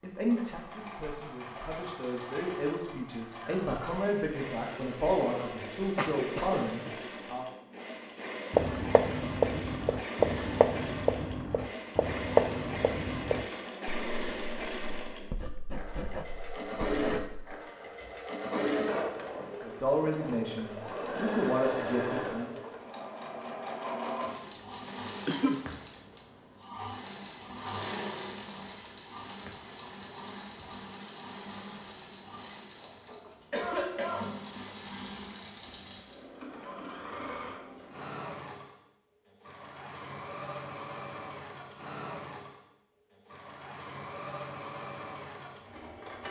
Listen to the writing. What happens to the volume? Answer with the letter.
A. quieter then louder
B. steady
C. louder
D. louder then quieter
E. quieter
E.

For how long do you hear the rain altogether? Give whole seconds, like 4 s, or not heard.
not heard.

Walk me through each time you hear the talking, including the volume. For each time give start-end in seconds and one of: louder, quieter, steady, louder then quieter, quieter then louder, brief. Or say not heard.
0.0-7.5 louder
19.6-22.5 brief.